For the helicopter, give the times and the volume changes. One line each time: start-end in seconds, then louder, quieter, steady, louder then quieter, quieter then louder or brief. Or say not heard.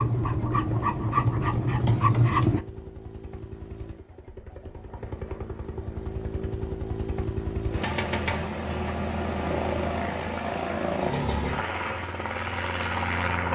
0.0-13.5 louder.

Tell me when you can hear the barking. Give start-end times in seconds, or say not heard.
0.0-2.6.